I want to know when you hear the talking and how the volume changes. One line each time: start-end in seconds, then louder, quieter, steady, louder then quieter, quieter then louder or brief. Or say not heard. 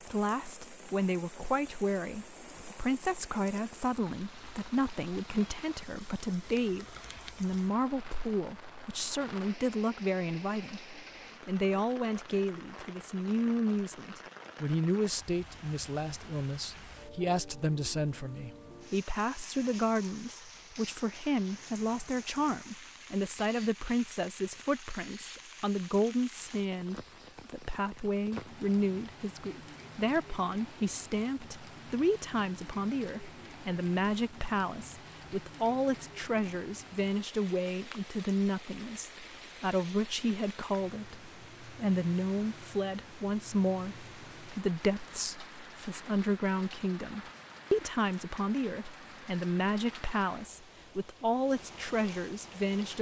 0.1-52.9 steady.